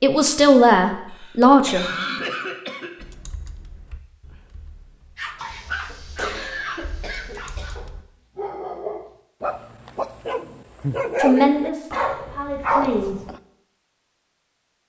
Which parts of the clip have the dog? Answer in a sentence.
You can hear the dog from 5.2 to 13.4 s.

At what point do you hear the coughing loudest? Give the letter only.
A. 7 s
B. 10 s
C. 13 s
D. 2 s
D.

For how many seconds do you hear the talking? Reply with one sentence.
The talking can be heard for 4 seconds in total.